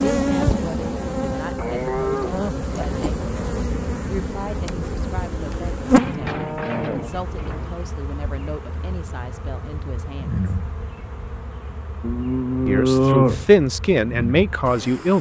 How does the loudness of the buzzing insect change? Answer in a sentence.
The loudness of the buzzing insect goes down.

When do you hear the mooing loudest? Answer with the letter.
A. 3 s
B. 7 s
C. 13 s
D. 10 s
C.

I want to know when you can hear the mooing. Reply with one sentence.
The mooing can be heard from 1.6 to 3.0 s, from 5.9 to 7.7 s and from 12.0 to 13.4 s.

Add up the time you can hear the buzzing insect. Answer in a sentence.
The buzzing insect can be heard for 15 seconds in total.